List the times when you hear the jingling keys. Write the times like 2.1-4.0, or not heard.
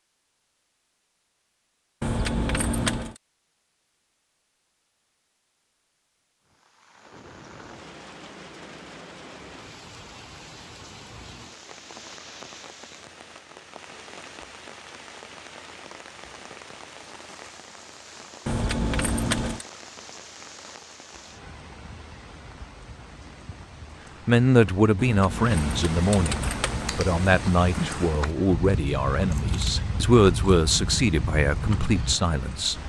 2.0-3.2, 18.4-19.6, 24.9-27.0.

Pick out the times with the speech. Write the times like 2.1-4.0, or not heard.
24.2-32.8.